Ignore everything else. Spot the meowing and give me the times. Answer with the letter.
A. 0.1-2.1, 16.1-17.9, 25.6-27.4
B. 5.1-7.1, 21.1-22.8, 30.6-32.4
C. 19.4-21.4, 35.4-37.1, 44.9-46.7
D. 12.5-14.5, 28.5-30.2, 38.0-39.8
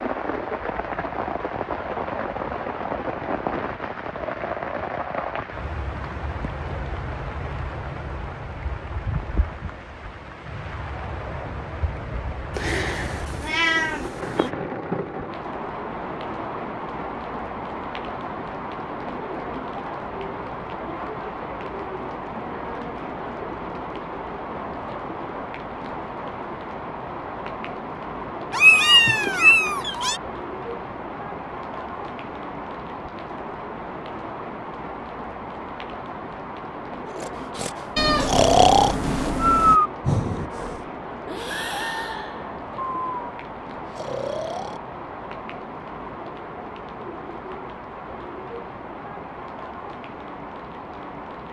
D.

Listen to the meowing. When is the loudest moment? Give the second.
29 s.